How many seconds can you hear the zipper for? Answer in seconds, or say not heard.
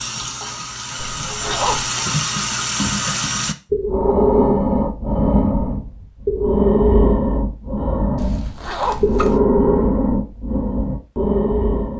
2 s.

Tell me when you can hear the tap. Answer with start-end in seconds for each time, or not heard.
0.0-3.5.